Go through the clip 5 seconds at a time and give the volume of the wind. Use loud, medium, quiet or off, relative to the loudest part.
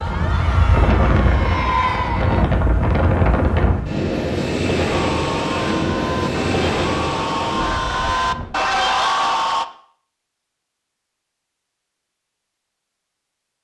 loud, loud, off.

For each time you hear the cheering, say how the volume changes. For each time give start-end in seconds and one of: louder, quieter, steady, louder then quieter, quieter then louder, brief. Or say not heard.
0.0-2.5 brief
4.9-9.7 louder.